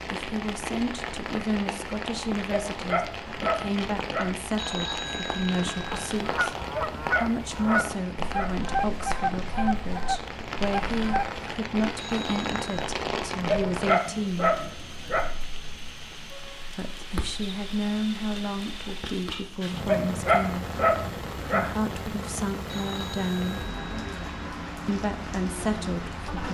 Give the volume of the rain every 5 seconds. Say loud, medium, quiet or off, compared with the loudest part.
loud, loud, loud, medium, loud, loud.